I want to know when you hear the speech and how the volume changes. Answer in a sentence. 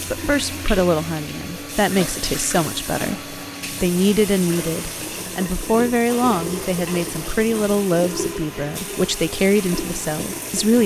You can hear the speech from 0.1 to 10.8 s, at a steady volume.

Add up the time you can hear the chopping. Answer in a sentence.
The chopping can't be heard in this clip.